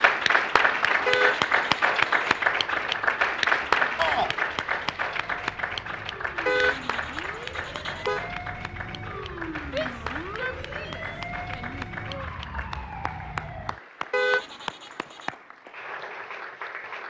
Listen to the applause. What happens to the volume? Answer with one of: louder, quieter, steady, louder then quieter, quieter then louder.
quieter.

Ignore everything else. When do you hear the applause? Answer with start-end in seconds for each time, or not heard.
0.0-17.0.